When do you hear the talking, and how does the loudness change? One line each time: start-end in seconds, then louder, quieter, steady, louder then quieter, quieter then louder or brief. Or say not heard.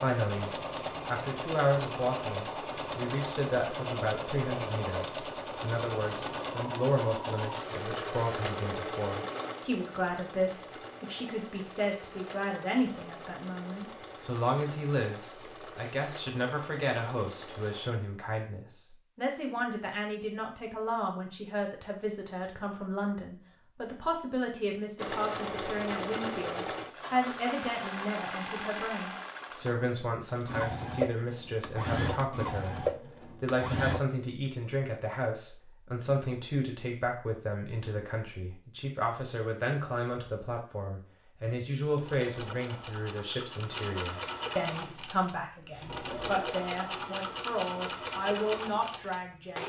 0.0-49.6 steady.